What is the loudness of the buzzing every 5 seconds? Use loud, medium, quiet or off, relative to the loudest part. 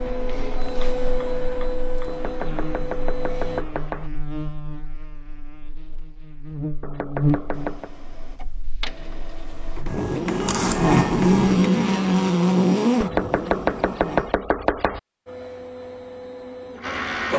quiet, medium, loud, off.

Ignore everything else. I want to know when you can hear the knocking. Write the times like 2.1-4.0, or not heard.
2.0-4.1, 6.8-7.9, 13.0-15.0.